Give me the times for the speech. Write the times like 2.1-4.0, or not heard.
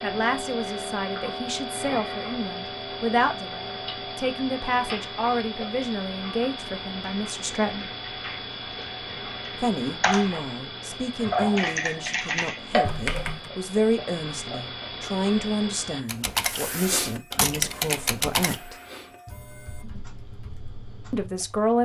0.0-7.9, 9.6-18.8, 21.1-21.8.